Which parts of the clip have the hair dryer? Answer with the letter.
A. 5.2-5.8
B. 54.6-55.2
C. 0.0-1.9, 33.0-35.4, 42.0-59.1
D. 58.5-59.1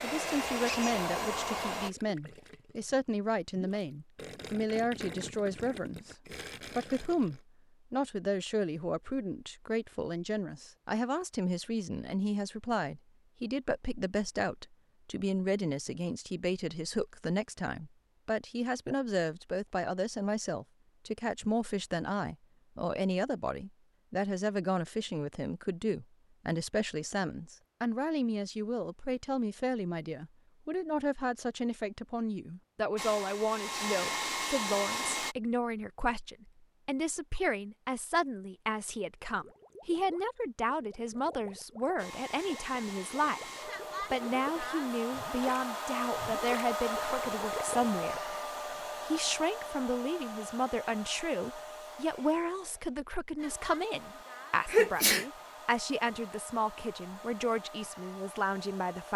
C.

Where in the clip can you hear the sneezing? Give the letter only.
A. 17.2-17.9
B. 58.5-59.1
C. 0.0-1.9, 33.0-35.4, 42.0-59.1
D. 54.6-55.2
D.